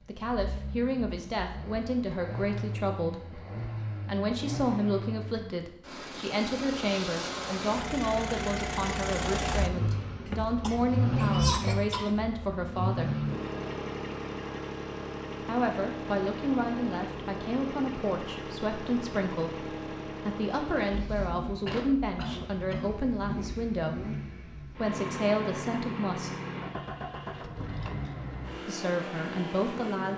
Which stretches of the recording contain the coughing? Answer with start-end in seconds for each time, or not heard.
10.2-12.2, 21.6-23.0.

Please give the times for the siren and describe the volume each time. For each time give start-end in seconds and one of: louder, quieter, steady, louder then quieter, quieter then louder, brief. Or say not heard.
not heard.